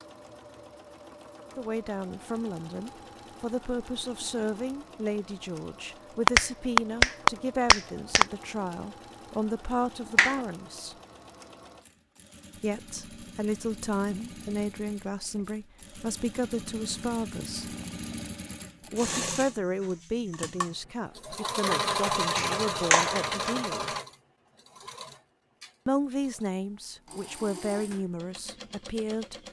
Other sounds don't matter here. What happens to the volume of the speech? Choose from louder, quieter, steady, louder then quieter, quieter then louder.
steady.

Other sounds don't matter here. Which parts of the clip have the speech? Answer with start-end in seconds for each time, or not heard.
1.6-10.9, 12.6-17.8, 18.8-23.9, 25.9-29.4.